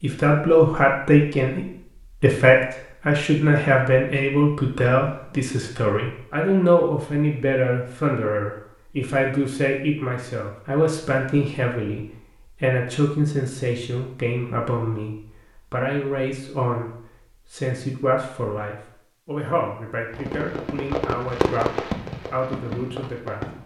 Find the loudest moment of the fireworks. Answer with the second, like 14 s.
22 s.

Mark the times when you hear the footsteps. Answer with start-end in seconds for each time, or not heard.
not heard.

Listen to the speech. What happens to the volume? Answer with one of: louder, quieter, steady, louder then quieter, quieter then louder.
quieter.